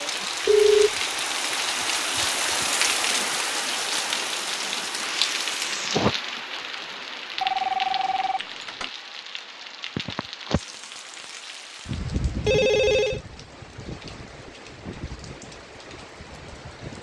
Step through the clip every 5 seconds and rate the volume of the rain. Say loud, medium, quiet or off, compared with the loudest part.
loud, loud, medium, quiet.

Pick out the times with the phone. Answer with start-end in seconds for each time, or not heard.
0.5-0.9, 7.4-8.9, 12.3-13.2.